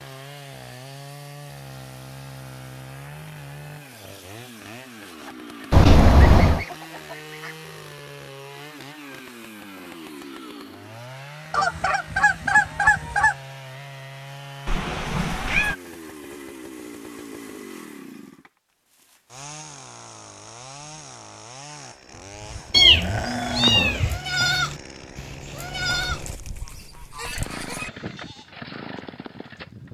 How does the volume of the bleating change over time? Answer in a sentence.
The loudness of the bleating goes up, then down.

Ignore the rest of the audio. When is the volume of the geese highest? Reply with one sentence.
The volume of the geese peaks at 13 seconds.